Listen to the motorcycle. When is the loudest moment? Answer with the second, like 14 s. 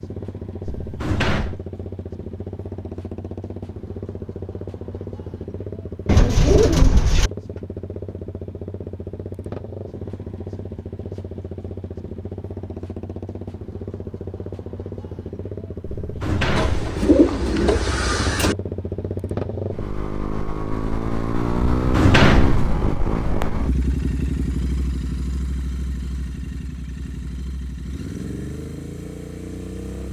22 s.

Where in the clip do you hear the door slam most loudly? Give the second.
22 s.